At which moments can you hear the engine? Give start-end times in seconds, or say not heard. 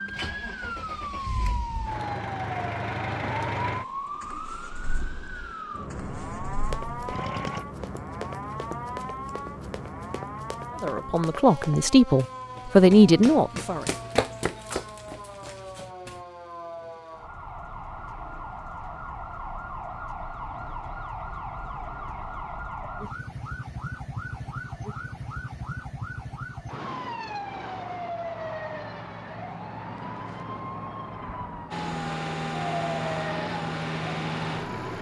0.0-7.7, 31.7-34.9.